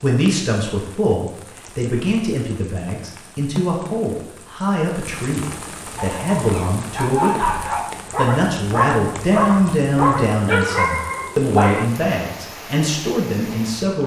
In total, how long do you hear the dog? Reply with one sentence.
The dog can be heard for 6 seconds in total.